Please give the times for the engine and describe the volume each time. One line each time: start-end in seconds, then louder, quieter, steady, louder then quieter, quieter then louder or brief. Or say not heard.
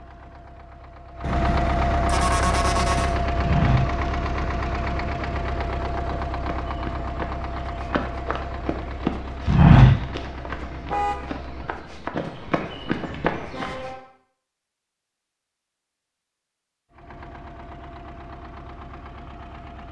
0.0-11.9 quieter
16.9-19.8 brief.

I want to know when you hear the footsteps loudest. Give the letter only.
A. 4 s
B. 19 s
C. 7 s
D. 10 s
D.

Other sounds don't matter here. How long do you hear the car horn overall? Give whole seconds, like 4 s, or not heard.
3 s.